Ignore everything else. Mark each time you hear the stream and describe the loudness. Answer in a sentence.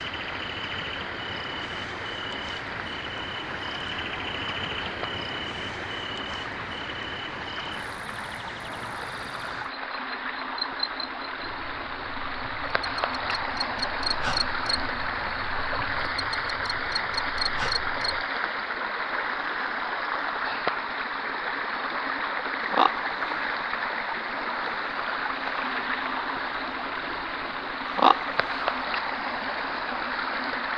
The stream can be heard from 0.0 to 30.7 s, getting louder.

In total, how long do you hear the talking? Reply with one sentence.
The talking can't be heard in this clip.